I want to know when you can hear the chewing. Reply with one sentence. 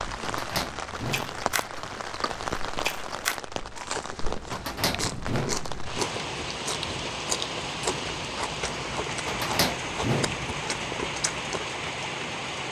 You can hear the chewing from 0.9 to 11.7 s.